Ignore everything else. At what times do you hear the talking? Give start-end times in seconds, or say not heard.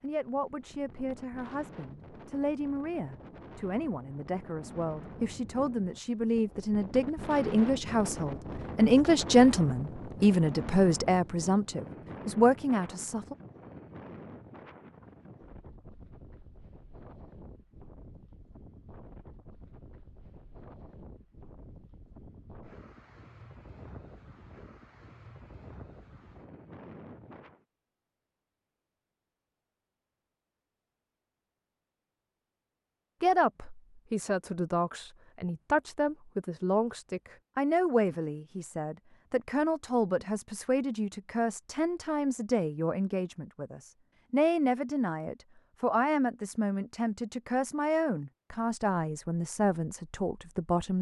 0.0-13.3, 33.2-50.9.